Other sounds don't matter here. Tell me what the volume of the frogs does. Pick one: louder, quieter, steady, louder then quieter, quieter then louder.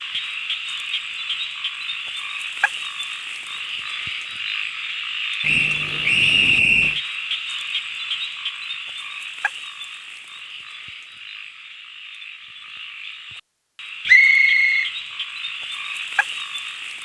quieter then louder.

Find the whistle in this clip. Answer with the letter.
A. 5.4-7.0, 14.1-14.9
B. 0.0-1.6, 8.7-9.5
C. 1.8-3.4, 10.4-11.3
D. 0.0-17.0
A.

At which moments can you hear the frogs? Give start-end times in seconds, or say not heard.
0.0-17.0.